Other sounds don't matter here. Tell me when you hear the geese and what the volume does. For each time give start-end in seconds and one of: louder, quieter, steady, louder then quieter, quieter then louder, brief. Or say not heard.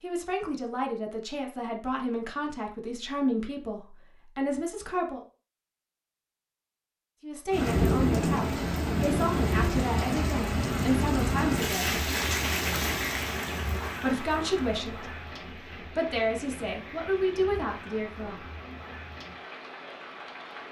not heard.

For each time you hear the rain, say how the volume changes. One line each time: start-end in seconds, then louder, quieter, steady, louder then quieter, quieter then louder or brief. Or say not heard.
7.5-20.6 quieter.